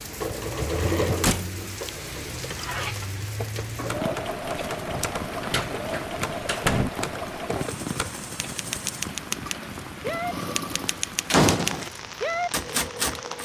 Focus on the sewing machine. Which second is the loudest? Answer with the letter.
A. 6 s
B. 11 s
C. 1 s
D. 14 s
C.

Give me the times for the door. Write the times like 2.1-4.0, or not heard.
1.2-1.9, 4.9-6.9, 11.3-11.9.